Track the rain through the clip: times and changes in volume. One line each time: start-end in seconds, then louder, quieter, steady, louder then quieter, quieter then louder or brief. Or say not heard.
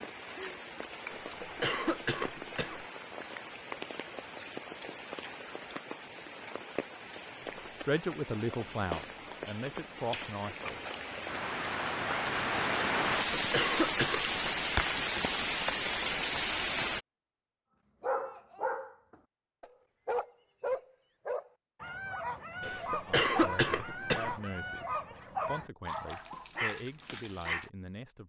0.0-17.0 louder.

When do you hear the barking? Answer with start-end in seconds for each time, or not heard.
18.0-27.7.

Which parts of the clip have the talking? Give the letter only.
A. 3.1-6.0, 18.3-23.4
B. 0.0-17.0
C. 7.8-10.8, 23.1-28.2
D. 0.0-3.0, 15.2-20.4
C.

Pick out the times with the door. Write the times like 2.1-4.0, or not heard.
not heard.